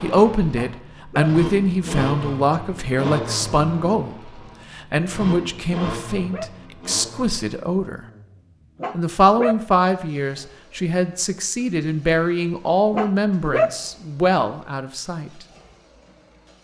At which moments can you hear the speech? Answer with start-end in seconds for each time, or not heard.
0.0-8.0, 8.9-15.3.